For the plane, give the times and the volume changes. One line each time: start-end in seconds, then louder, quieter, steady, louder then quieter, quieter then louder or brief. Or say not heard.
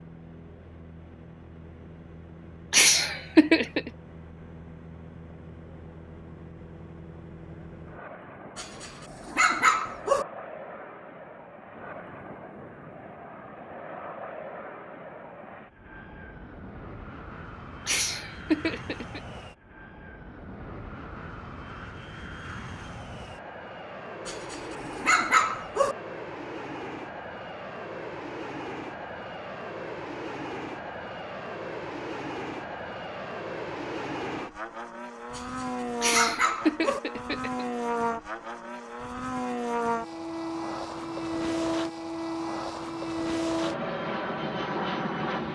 0.0-45.5 louder.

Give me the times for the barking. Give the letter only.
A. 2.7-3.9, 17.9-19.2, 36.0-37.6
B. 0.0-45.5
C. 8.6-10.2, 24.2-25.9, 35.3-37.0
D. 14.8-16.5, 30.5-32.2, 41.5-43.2
C.